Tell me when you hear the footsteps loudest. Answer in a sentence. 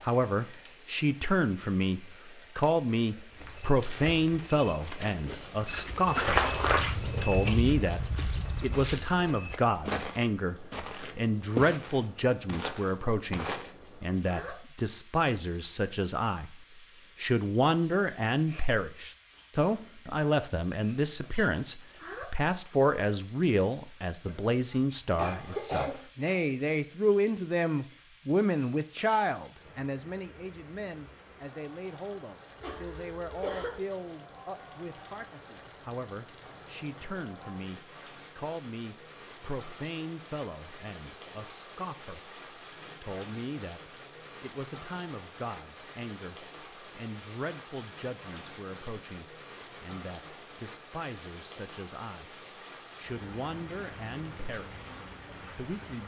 The volume of the footsteps peaks at 6 seconds.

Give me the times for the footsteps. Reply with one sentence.
The footsteps can be heard from 3.4 to 13.8 s.